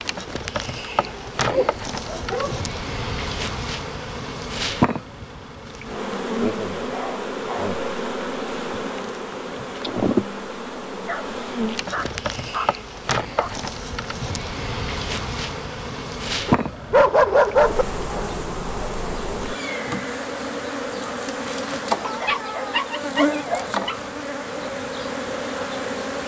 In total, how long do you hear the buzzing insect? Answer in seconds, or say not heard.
26 s.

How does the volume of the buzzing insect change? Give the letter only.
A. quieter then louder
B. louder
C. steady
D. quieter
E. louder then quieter
C.